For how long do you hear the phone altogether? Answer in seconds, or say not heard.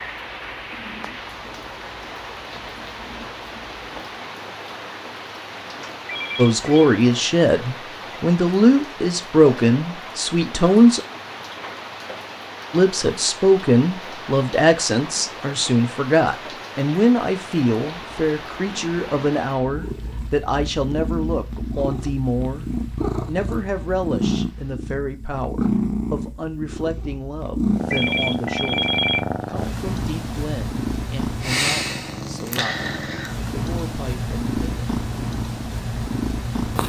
2 s.